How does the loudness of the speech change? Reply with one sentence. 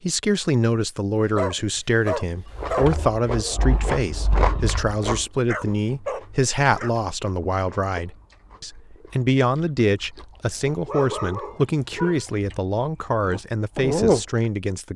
The volume of the speech stays about the same.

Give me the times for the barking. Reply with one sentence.
The barking can be heard from 1.3 to 2.9 s, from 5.5 to 7.0 s and from 10.8 to 12.2 s.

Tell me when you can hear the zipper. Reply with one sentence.
The zipper can't be heard in this clip.